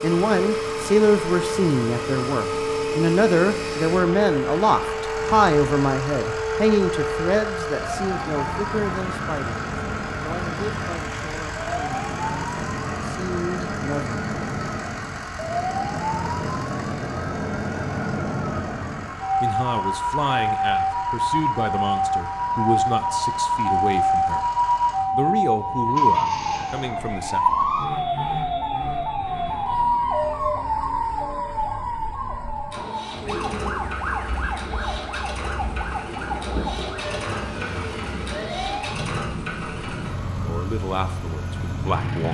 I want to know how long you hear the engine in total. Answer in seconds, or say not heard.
42 s.